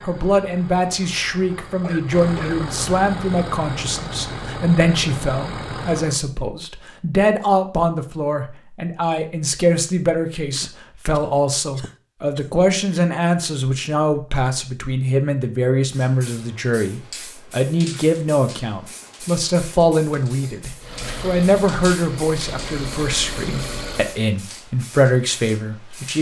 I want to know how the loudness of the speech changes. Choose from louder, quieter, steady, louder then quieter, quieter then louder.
steady.